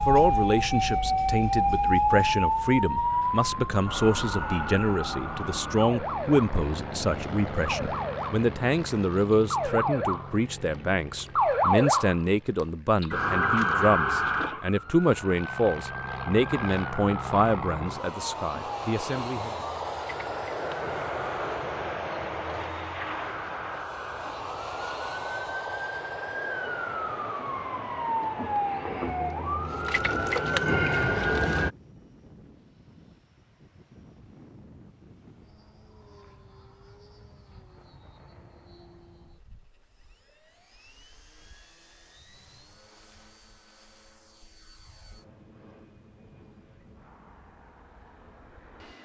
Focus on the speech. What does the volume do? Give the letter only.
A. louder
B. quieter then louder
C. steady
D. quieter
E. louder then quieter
C.